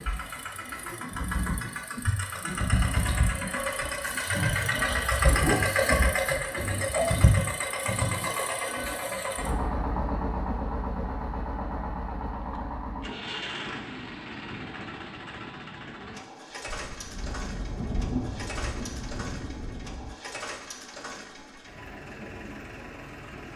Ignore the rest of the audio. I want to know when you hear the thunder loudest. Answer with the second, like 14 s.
18 s.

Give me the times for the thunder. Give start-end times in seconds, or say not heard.
16.6-20.1.